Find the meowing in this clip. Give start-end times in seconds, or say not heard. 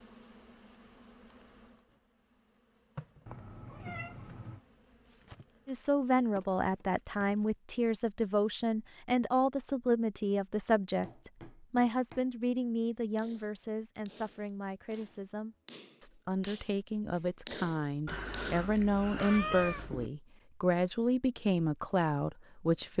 3.2-4.6, 18.1-20.1.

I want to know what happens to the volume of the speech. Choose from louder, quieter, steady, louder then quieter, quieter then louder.
quieter then louder.